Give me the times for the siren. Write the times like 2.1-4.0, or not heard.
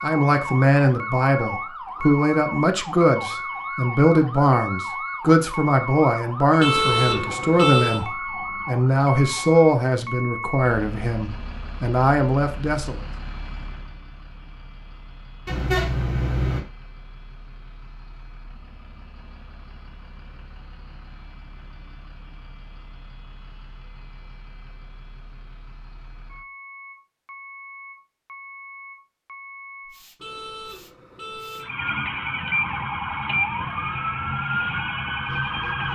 0.0-9.7, 31.6-35.9.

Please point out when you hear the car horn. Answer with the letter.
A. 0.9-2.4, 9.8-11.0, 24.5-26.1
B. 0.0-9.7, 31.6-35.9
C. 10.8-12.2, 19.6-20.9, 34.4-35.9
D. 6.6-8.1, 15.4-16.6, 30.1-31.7
D.